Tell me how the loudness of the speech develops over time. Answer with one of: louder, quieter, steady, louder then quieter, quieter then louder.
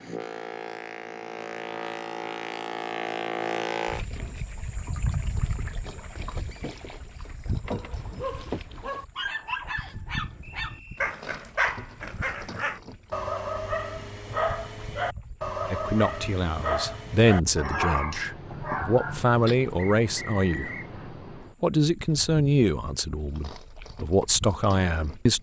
steady.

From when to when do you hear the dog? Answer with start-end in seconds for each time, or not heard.
7.6-19.6.